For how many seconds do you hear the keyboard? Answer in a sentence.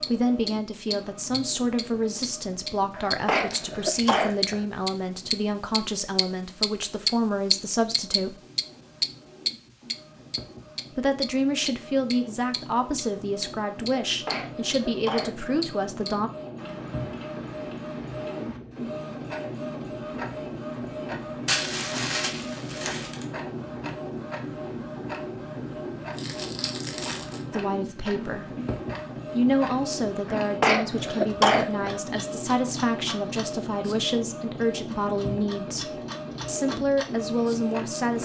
You can't hear the keyboard here.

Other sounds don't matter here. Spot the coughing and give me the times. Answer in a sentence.
The coughing can be heard from 3.0 to 4.7 s, from 14.1 to 15.6 s and from 30.2 to 32.0 s.